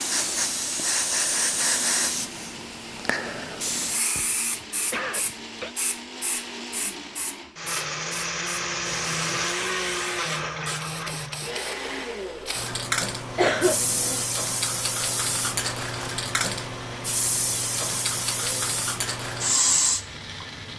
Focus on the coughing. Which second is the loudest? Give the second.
14 s.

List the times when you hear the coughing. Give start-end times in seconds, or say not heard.
4.2-5.8, 13.3-14.2.